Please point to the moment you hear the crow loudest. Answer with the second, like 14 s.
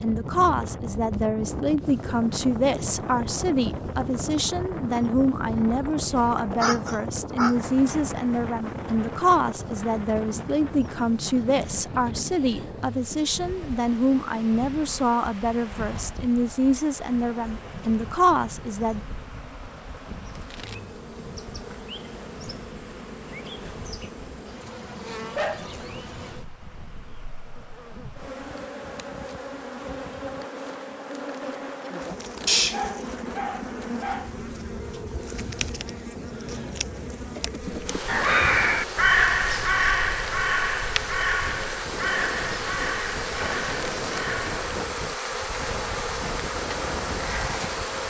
39 s.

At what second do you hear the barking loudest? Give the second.
33 s.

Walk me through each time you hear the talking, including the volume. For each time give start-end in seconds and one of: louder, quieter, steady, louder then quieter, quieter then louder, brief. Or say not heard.
0.0-19.0 steady.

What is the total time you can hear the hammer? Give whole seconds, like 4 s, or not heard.
not heard.